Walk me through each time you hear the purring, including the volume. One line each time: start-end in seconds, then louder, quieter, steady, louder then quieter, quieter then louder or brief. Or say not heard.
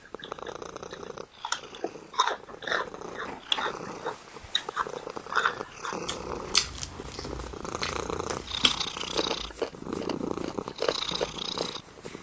0.0-12.1 louder.